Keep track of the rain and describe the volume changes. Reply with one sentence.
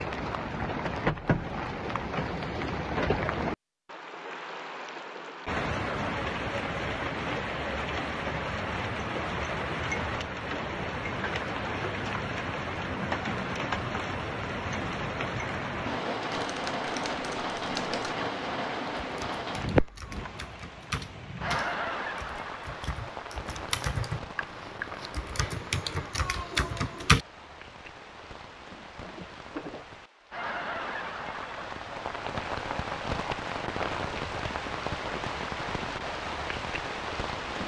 The volume of the rain goes down, then up.